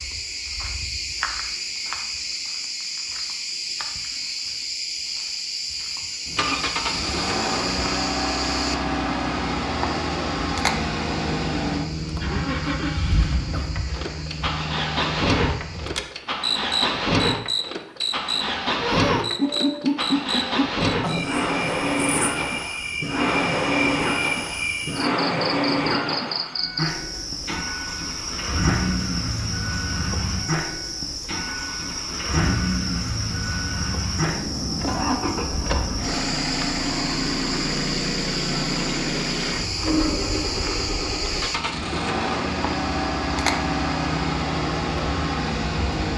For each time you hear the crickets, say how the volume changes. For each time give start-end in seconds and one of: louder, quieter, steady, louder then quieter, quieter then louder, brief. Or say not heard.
0.0-46.1 steady.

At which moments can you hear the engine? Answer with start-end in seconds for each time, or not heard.
6.2-46.1.